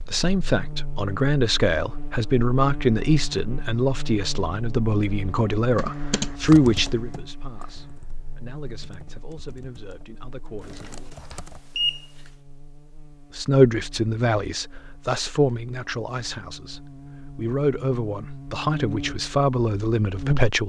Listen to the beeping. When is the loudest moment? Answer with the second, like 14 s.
12 s.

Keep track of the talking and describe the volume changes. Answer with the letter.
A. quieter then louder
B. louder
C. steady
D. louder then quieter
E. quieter
A.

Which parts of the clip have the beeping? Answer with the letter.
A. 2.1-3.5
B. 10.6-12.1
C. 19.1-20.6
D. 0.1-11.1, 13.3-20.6
B.